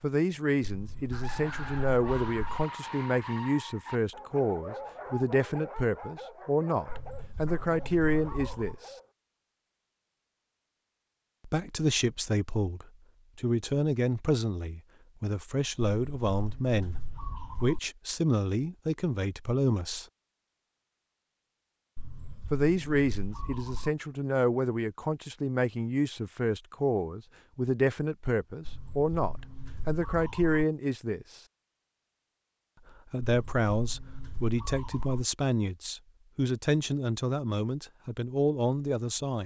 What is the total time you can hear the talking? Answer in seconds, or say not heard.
32 s.